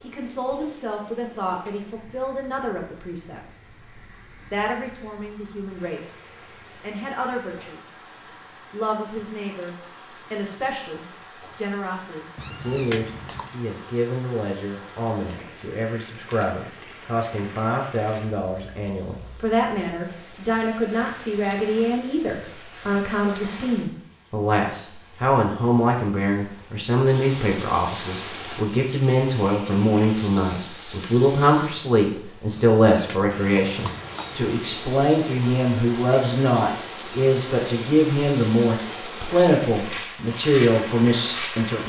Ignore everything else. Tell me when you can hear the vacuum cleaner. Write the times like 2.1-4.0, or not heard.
not heard.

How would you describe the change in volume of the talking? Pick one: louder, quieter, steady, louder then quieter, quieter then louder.
louder.